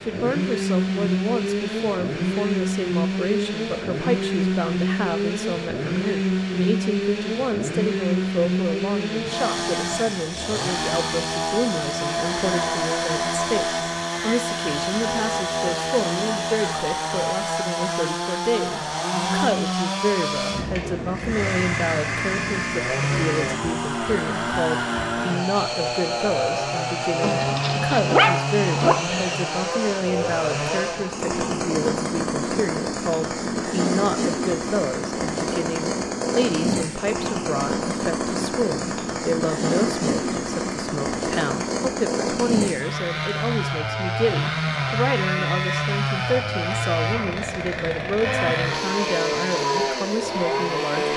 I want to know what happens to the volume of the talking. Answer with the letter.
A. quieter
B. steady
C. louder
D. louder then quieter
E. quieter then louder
B.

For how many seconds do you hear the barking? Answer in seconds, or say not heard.
2 s.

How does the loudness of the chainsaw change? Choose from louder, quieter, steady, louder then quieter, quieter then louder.
steady.